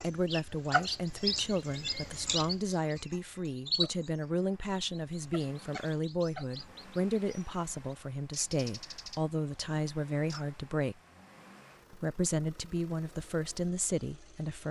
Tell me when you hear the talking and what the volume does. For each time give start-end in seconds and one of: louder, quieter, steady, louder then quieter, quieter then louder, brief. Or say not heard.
0.0-10.9 steady
11.9-14.6 brief.